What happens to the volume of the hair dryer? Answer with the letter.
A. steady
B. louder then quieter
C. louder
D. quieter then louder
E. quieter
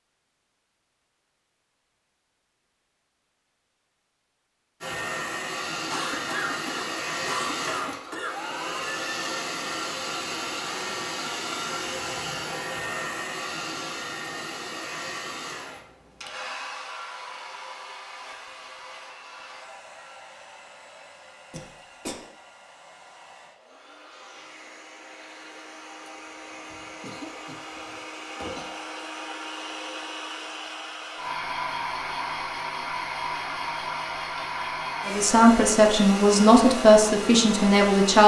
D.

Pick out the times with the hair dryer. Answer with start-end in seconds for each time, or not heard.
4.8-38.2.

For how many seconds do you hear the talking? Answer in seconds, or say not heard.
3 s.